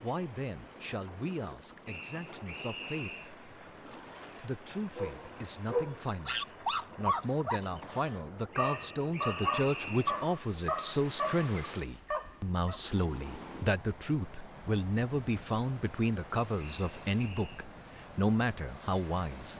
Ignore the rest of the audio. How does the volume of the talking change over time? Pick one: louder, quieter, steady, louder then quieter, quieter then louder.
louder.